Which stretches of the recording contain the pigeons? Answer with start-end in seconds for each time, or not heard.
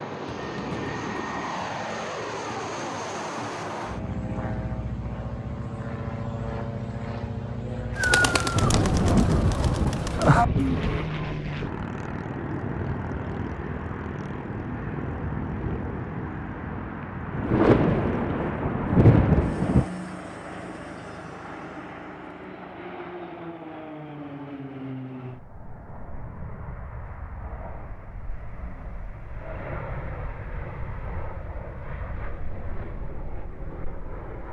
8.0-11.1.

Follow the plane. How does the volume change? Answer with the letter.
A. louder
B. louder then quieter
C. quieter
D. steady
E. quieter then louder
C.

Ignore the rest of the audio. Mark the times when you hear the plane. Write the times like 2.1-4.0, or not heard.
0.0-34.4.